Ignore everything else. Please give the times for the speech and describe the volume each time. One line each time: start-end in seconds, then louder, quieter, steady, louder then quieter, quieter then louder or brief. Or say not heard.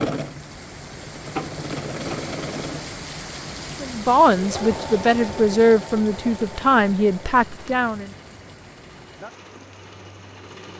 3.8-8.1 steady.